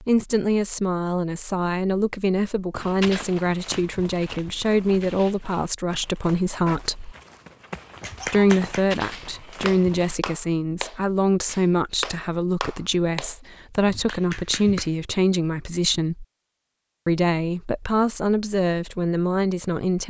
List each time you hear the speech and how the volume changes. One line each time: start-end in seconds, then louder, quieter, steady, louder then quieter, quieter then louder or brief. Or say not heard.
0.0-7.2 steady
8.2-16.2 steady
17.1-20.0 brief.